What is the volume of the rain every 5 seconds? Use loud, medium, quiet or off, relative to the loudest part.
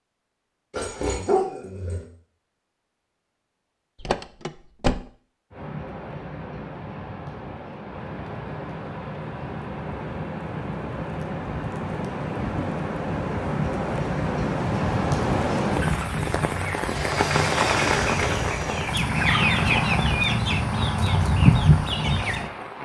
off, medium, loud, loud, medium.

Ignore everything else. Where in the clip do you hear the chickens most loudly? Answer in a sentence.
The volume of the chickens peaks at 22 seconds.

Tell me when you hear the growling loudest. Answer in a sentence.
The volume of the growling peaks at 1 second.